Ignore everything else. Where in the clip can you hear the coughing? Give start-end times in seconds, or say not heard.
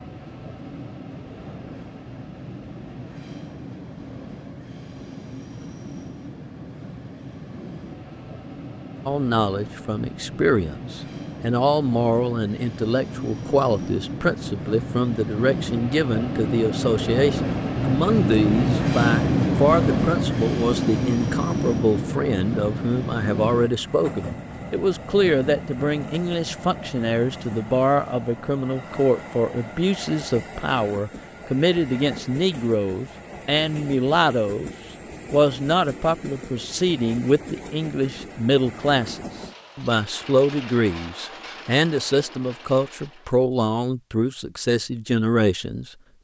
not heard.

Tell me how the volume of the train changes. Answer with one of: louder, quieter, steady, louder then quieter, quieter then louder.
louder then quieter.